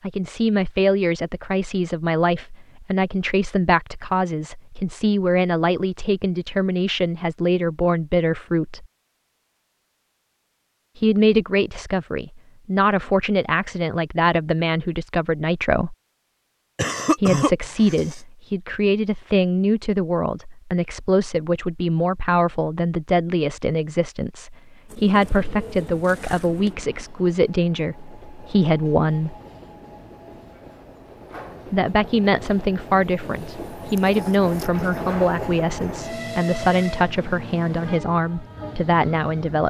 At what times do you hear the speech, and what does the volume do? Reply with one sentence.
You can hear the speech from 0.0 to 8.8 s, at a steady volume; from 10.9 to 15.9 s, at a steady volume; from 17.1 to 29.4 s, at a steady volume; and from 31.7 to 39.6 s, at a steady volume.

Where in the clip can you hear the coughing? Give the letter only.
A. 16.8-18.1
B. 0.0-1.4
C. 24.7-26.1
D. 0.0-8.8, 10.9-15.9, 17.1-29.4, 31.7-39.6
A.